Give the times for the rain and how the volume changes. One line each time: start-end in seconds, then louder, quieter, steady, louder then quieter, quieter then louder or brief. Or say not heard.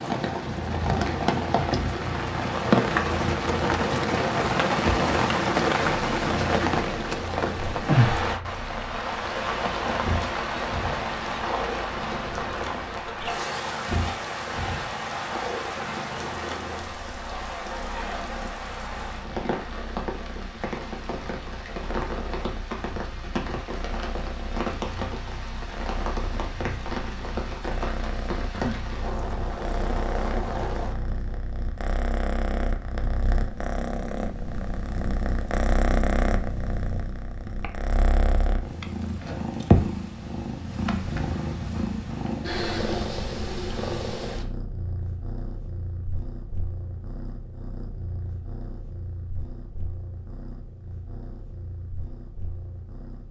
0.0-31.1 quieter.